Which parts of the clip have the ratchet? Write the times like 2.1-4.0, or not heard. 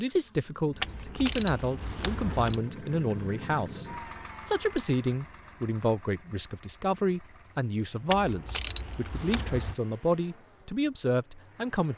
0.8-2.6, 8.1-9.8.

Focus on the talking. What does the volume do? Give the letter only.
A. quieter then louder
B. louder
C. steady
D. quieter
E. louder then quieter
C.